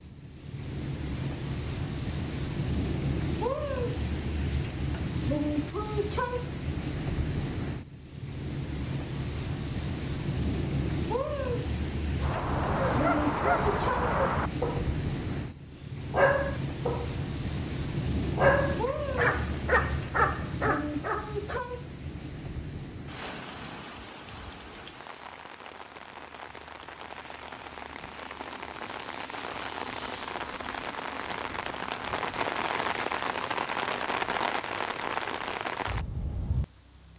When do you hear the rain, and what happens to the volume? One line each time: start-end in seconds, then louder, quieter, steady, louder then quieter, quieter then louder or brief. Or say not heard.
0.0-37.1 quieter then louder.